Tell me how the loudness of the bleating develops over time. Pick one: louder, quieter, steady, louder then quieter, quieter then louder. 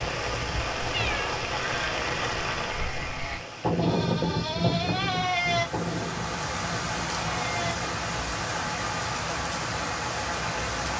louder then quieter.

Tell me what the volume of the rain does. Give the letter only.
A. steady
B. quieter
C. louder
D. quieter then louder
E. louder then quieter
D.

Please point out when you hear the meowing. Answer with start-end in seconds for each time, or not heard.
0.9-1.4.